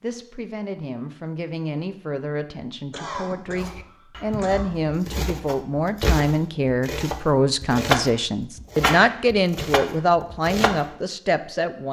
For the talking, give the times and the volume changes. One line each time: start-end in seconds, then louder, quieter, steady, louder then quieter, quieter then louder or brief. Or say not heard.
0.0-11.8 louder.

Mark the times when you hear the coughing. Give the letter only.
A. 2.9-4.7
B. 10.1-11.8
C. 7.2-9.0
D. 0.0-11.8
A.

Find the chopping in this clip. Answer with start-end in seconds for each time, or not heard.
3.5-10.9.